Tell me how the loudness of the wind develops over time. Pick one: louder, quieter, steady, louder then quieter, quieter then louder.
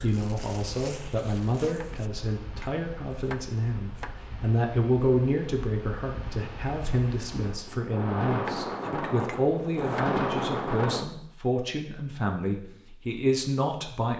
louder.